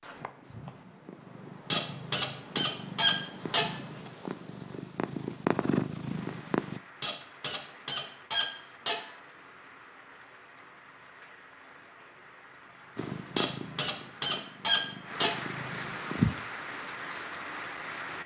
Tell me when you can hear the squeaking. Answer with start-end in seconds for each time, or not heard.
1.7-3.7, 7.0-9.0, 13.3-15.3.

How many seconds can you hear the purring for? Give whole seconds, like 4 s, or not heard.
10 s.